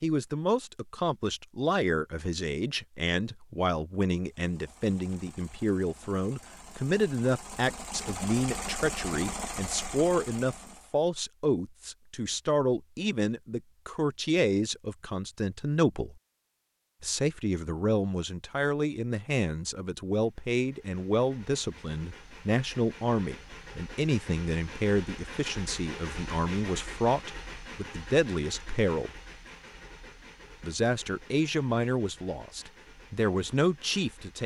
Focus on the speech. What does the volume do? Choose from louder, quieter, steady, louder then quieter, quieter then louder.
steady.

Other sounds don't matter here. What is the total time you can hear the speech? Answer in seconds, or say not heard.
32 s.